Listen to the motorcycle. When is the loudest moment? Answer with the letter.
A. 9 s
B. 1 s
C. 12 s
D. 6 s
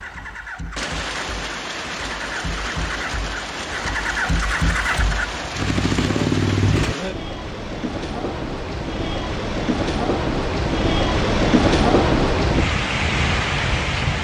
D.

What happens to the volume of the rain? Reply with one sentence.
The loudness of the rain goes up.